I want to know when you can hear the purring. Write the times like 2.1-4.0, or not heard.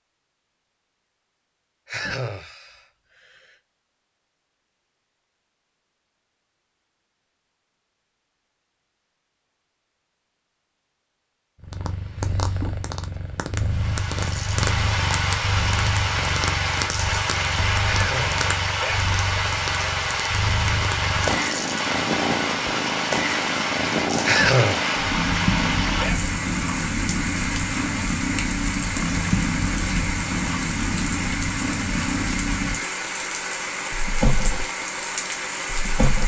11.6-36.2.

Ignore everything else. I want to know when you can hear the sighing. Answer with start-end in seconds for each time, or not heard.
1.9-3.5, 17.8-18.4, 24.2-24.9.